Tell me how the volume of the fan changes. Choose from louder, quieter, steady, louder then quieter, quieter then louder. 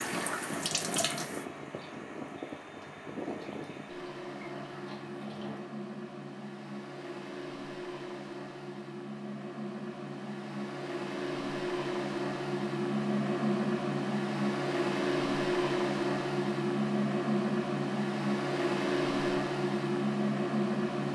louder.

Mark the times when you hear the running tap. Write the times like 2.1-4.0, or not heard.
0.0-5.7.